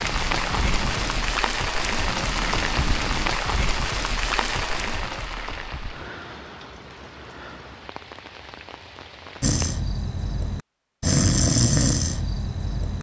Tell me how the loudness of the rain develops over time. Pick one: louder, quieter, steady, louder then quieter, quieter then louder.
quieter.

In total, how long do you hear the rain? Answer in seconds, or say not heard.
10 s.